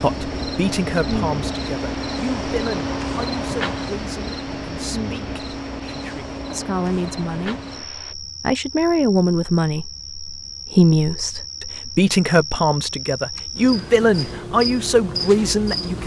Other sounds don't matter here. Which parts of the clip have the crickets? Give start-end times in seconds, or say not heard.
0.0-16.0.